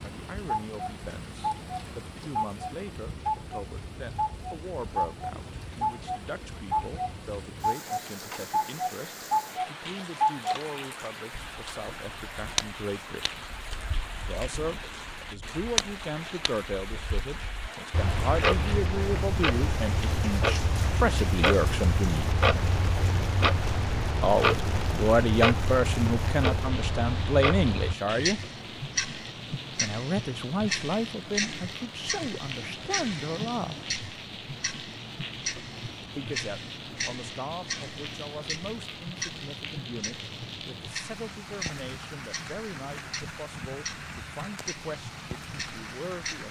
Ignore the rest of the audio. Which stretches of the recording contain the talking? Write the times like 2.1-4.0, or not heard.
0.0-13.4, 14.2-22.3, 24.2-28.4, 29.8-33.8, 36.1-46.4.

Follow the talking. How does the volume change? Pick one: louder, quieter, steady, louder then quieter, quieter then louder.
louder then quieter.